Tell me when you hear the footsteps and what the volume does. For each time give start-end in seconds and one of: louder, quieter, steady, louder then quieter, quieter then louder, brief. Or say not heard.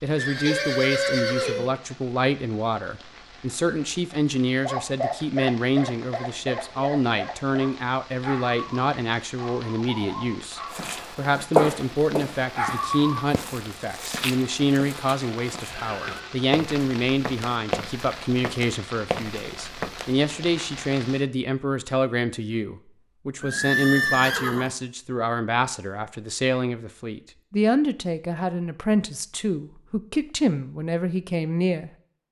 10.7-20.1 quieter then louder.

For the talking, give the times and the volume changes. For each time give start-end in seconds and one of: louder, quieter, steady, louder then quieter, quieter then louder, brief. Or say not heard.
0.0-31.9 steady.